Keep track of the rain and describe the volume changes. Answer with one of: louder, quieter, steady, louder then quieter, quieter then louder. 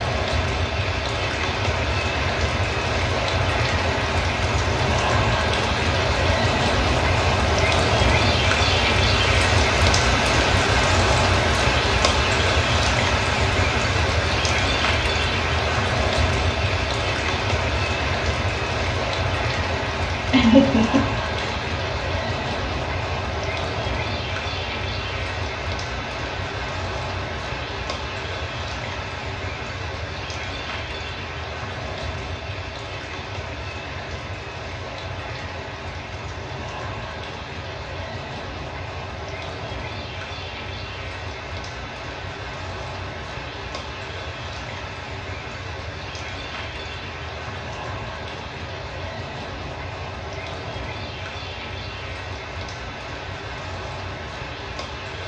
quieter.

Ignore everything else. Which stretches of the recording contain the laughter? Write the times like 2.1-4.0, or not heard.
20.3-21.6.